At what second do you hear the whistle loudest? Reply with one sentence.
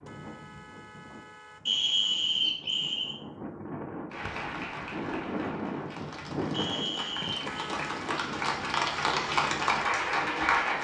The volume of the whistle peaks at 2 seconds.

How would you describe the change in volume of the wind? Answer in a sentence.
The loudness of the wind goes up, then down.